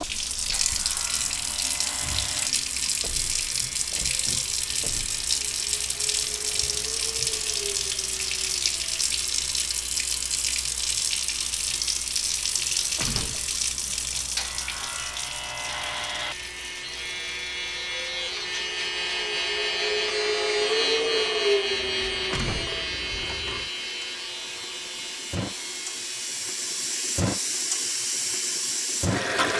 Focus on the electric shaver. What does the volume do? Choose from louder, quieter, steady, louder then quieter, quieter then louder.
louder then quieter.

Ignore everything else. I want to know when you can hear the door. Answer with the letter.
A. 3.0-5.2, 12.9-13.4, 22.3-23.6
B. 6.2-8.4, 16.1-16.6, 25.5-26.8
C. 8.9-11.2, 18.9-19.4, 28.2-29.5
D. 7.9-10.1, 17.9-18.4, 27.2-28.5
A.